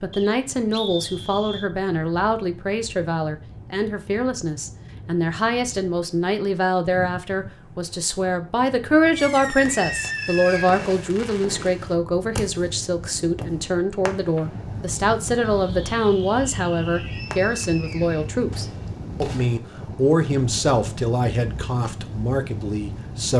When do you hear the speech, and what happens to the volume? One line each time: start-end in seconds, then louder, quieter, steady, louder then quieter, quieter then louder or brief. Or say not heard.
0.0-23.3 steady.